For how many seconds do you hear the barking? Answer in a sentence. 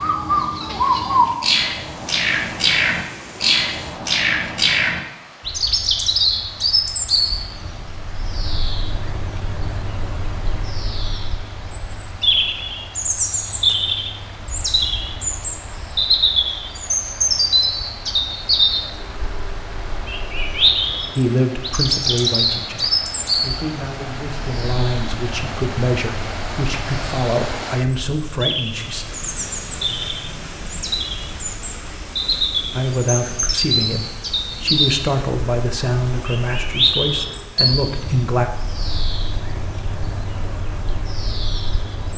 The barking can't be heard in this clip.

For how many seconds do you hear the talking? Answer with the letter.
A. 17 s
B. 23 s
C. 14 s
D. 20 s
C.